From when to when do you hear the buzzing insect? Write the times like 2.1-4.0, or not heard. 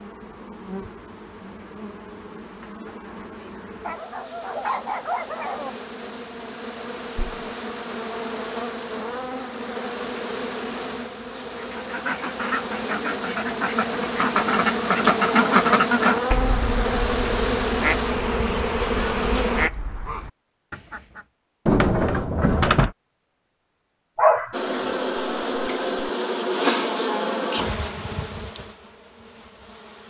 0.0-19.7, 24.5-30.0.